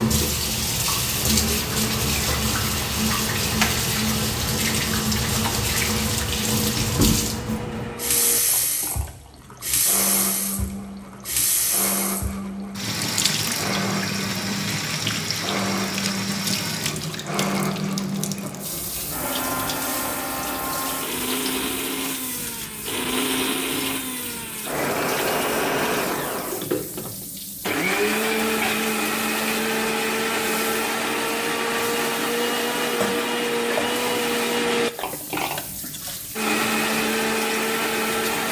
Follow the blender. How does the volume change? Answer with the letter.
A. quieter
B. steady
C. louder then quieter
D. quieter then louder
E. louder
E.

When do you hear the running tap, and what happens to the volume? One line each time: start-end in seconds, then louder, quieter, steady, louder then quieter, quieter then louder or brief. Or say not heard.
0.0-38.4 quieter.